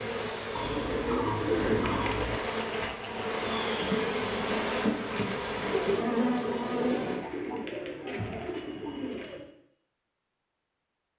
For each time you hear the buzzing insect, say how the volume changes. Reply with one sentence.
The buzzing insect can be heard from 0.0 to 7.2 s, getting louder.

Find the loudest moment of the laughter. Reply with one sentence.
The loudest moment of the laughter is at 6 seconds.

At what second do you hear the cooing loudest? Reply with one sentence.
The volume of the cooing peaks at 2 seconds.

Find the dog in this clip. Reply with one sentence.
You can't hear the dog here.